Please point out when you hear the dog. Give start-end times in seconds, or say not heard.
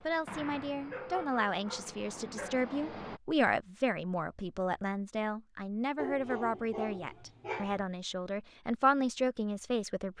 0.9-2.7, 6.0-7.8.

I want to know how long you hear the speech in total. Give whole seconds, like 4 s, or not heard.
10 s.